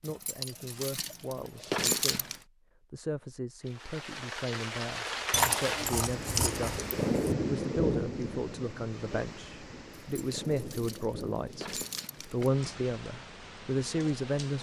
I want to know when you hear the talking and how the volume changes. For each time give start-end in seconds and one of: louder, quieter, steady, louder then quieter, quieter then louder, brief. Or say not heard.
0.0-14.5 louder.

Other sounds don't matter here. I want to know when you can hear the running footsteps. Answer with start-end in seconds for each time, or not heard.
not heard.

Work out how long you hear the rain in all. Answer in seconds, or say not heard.
11 s.